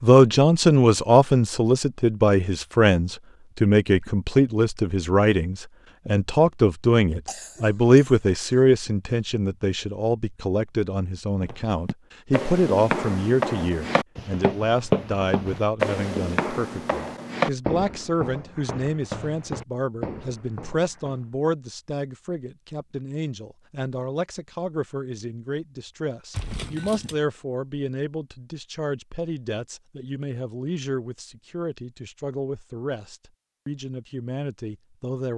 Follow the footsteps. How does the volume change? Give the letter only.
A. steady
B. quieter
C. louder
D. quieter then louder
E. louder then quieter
B.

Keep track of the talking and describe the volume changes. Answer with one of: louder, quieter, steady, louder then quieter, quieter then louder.
quieter.